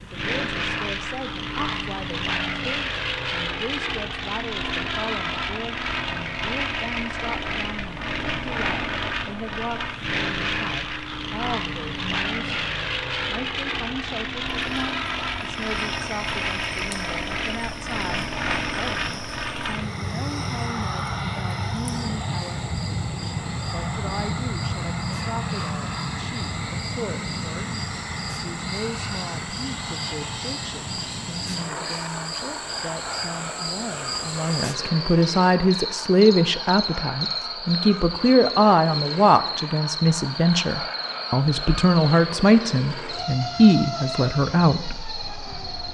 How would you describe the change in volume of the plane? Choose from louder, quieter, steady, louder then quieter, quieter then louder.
quieter.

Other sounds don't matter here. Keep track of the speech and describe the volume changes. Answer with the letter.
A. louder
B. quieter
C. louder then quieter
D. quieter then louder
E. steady
A.